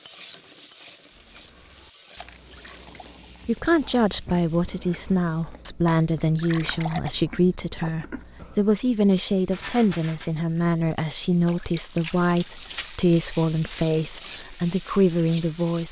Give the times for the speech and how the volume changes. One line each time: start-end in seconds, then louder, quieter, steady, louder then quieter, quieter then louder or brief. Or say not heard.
3.5-15.8 steady.